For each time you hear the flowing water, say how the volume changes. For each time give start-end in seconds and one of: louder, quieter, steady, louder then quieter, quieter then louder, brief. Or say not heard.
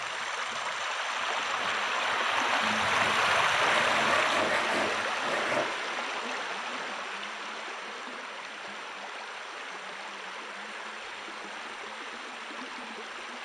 0.0-13.4 quieter.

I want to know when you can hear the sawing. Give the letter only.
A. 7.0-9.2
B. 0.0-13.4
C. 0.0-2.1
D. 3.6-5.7
D.